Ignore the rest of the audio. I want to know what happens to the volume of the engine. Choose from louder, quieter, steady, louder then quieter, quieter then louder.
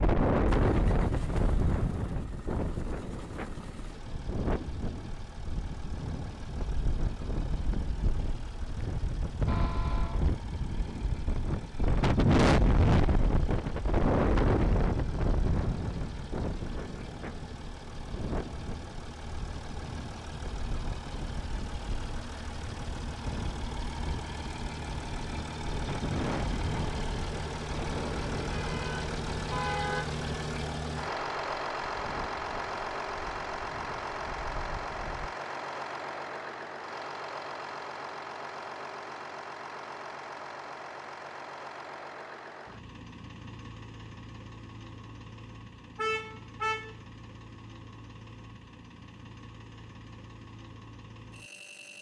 louder then quieter.